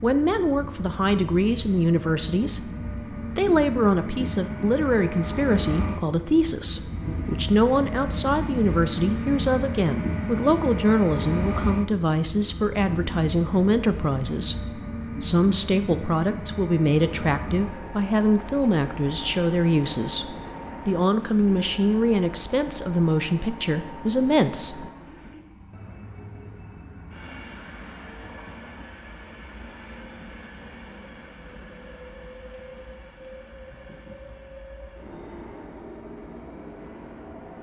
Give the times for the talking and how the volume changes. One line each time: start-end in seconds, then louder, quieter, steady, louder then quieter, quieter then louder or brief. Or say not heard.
0.0-24.9 steady.